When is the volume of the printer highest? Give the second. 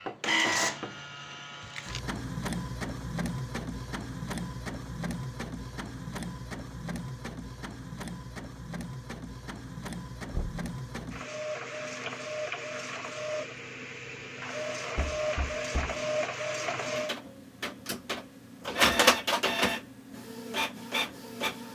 19 s.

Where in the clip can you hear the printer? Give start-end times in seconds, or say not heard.
0.0-21.7.